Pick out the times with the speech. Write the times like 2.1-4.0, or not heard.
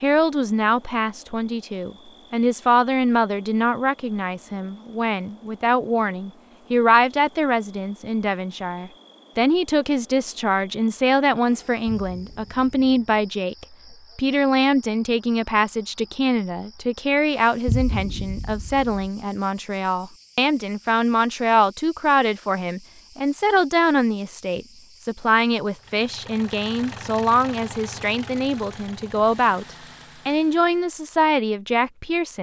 0.0-29.6, 30.2-32.3.